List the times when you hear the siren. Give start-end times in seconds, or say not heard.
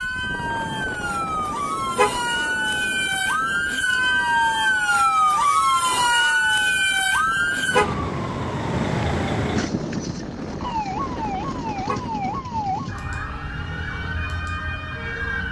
0.0-15.4.